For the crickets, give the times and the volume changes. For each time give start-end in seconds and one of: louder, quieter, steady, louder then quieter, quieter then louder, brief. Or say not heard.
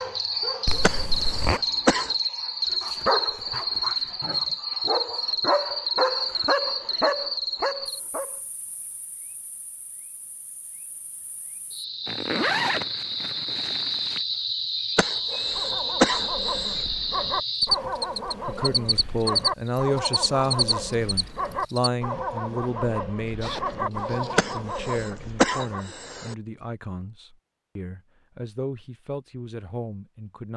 0.0-21.9 quieter then louder.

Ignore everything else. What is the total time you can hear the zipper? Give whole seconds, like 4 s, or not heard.
4 s.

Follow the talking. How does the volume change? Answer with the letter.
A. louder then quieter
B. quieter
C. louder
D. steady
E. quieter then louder
B.